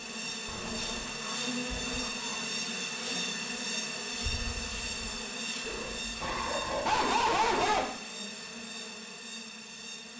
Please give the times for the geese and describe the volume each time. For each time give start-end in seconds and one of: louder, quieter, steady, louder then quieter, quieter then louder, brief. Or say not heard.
not heard.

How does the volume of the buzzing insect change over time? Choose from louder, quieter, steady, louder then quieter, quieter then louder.
quieter.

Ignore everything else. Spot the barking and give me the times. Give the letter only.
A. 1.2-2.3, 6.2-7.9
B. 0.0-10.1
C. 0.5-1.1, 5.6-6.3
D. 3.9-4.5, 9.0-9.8
A.